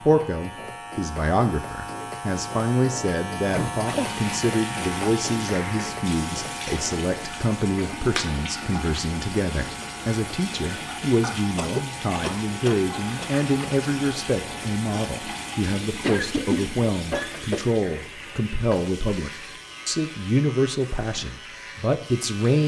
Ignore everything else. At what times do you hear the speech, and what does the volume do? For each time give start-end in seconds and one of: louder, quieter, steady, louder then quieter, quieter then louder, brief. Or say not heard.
0.0-22.6 steady.